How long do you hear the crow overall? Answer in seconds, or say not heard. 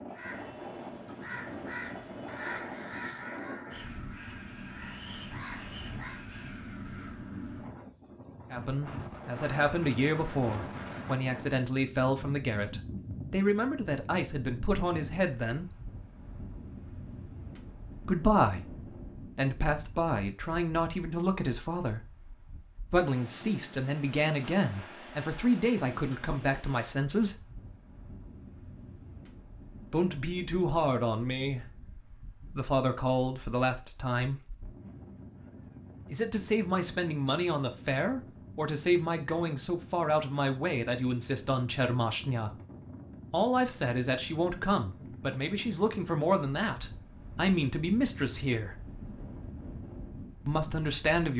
6 s.